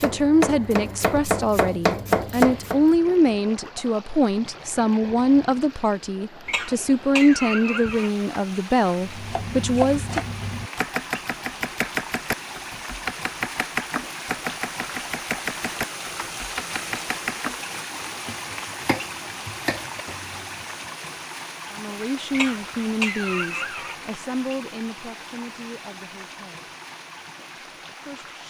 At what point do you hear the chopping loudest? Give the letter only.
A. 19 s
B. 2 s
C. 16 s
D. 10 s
B.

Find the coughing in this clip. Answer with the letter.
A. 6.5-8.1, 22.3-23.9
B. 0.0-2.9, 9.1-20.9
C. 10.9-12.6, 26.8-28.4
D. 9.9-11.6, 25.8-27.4
A.